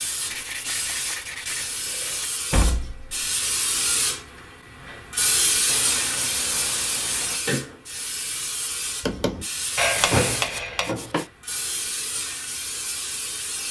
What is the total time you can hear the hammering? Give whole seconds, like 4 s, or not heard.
2 s.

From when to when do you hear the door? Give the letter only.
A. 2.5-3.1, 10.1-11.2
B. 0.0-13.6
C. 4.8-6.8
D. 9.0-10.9
A.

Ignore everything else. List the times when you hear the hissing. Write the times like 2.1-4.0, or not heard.
0.0-13.6.